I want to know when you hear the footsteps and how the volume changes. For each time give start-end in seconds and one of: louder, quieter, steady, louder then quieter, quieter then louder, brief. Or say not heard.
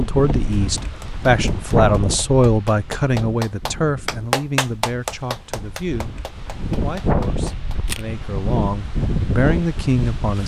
not heard.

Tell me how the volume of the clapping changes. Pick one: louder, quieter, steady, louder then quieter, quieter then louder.
louder then quieter.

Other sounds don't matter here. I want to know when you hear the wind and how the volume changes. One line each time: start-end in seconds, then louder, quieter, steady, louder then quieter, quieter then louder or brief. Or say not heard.
0.0-10.4 quieter then louder.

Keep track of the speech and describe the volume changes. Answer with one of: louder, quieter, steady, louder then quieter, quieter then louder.
quieter then louder.